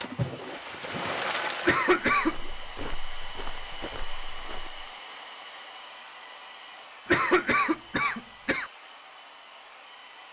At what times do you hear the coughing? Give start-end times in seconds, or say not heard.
1.6-2.4, 7.0-8.7.